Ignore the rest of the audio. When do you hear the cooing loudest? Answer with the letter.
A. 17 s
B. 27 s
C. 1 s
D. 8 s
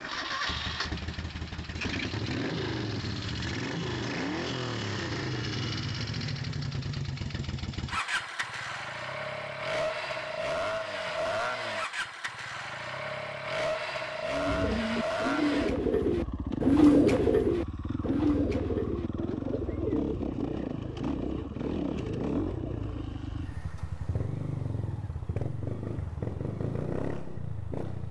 A.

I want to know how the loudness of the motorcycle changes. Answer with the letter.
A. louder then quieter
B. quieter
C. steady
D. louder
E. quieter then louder
C.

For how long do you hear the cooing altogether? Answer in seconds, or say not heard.
9 s.